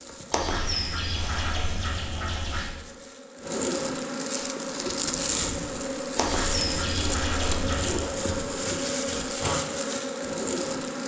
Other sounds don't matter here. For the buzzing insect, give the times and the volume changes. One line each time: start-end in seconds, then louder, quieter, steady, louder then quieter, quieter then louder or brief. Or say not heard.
0.0-11.0 louder.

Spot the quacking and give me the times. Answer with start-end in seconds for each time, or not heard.
0.3-2.8, 6.2-8.1.